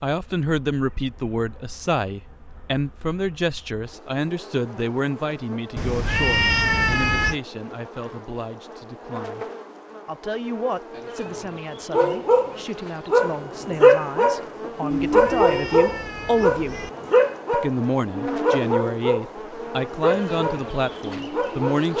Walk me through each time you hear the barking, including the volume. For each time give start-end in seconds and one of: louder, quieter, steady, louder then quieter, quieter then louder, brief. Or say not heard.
11.9-21.9 quieter.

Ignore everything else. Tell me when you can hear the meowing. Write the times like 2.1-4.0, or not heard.
5.8-7.4, 14.9-16.9.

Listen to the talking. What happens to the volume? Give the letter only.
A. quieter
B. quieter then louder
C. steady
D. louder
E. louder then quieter
B.